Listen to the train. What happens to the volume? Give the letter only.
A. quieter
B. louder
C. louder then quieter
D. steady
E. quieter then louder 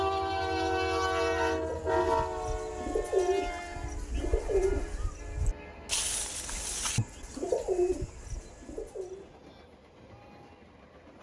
A.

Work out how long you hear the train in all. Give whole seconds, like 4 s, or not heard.
11 s.